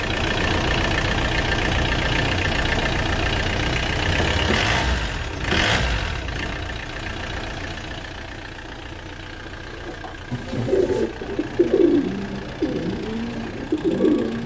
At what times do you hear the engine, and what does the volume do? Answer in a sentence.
The engine can be heard from 0.0 to 14.4 s, getting quieter.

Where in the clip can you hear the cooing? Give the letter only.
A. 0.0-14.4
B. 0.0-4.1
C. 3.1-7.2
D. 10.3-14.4
D.